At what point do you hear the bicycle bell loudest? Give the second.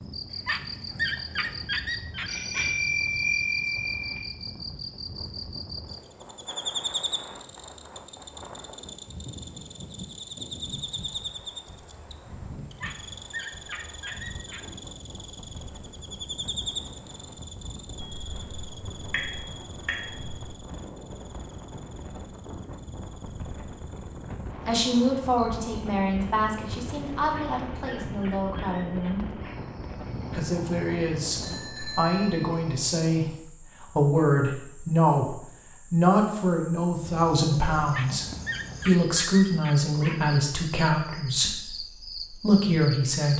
3 s.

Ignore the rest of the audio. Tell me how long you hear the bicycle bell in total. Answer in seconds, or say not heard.
6 s.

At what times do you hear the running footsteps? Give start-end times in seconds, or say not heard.
not heard.